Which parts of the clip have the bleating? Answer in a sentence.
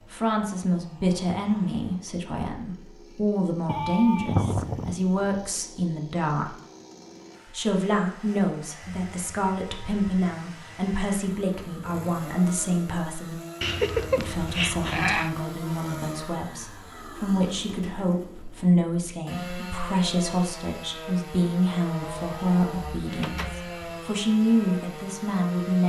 The bleating can be heard from 3.6 to 5.4 s, from 13.6 to 15.3 s and from 22.0 to 23.9 s.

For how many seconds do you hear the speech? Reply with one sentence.
You can hear the speech for 24 seconds altogether.